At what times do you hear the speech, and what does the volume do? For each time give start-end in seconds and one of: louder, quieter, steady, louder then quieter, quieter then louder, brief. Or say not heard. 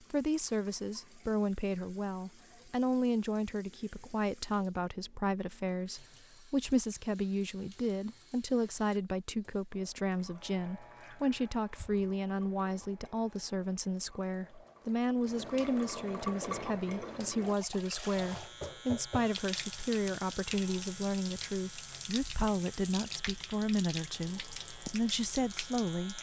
0.1-26.1 steady.